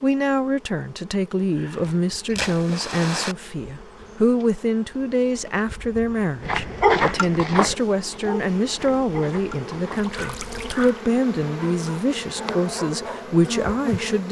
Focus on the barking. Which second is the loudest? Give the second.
7 s.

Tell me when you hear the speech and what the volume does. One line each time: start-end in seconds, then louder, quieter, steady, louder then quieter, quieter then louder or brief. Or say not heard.
0.0-14.2 steady.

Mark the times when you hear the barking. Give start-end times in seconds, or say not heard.
6.4-14.2.